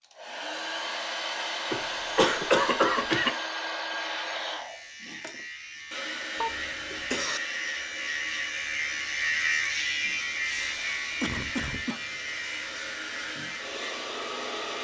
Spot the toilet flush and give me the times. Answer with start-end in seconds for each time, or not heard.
not heard.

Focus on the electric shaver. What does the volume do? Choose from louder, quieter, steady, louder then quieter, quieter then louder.
louder then quieter.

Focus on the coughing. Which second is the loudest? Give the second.
3 s.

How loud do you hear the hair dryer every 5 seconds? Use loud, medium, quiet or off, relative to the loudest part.
loud, medium, medium.